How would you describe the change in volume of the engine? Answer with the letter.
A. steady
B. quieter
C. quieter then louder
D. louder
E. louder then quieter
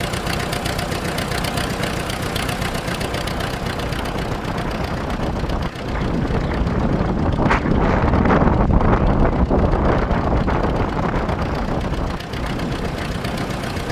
C.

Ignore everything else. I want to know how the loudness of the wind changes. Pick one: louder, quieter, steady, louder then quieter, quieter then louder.
louder then quieter.